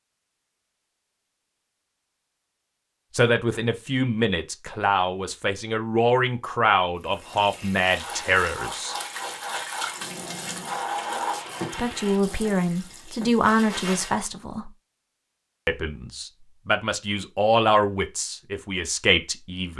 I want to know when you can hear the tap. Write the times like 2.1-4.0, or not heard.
7.0-14.2.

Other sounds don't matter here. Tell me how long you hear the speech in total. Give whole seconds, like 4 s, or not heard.
13 s.